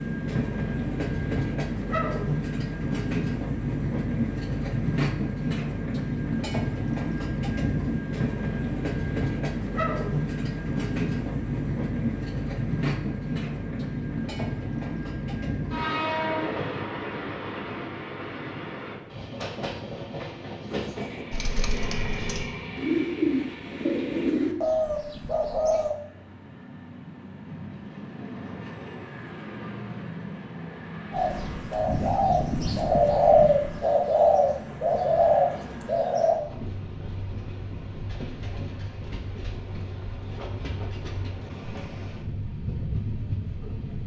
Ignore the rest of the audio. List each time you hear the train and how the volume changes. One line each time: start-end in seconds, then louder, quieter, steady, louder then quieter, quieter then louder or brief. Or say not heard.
0.0-44.0 quieter.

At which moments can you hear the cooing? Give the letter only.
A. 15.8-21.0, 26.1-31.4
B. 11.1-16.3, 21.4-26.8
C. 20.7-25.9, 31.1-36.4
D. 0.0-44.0
C.